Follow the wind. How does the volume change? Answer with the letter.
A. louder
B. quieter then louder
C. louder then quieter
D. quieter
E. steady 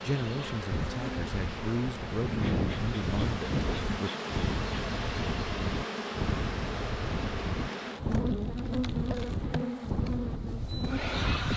E.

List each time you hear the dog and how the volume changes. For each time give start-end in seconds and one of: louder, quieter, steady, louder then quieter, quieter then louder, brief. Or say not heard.
not heard.